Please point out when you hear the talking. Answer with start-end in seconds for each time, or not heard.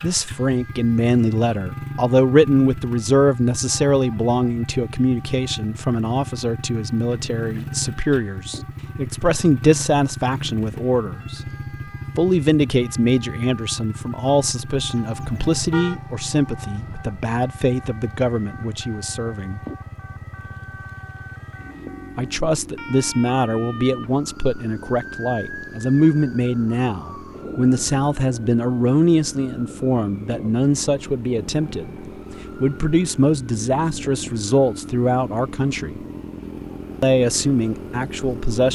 0.0-11.4, 12.2-19.6, 22.1-36.0, 37.0-38.6.